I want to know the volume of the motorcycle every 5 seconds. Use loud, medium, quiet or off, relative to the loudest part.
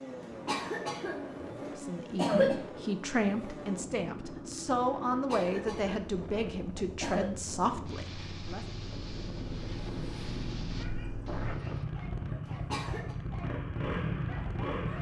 medium, medium, loud.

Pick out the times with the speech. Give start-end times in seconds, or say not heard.
1.8-8.7.